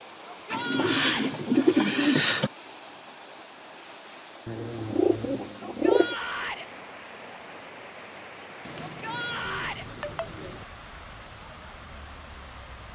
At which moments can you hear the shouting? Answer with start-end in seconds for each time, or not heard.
0.2-1.3, 5.6-6.7, 8.8-9.8.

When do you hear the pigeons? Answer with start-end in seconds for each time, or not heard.
0.5-2.5, 4.5-6.2, 8.6-10.7.